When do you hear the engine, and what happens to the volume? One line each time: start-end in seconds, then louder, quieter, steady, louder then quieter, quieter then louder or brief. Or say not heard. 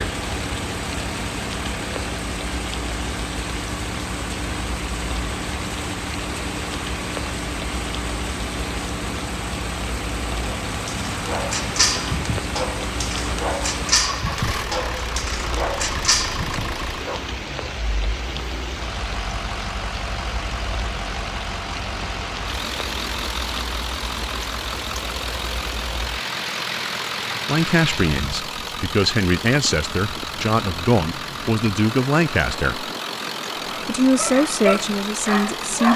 0.0-35.9 steady.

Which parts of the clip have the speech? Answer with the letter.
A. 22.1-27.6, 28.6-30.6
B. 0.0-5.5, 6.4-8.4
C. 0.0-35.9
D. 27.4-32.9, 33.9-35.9
D.